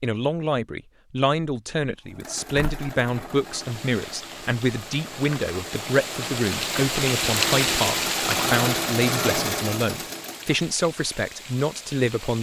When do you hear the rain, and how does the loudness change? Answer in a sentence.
You can hear the rain from 3.2 to 12.3 s, getting louder then quieter.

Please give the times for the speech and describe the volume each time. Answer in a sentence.
The speech can be heard from 0.0 to 12.3 s, at a steady volume.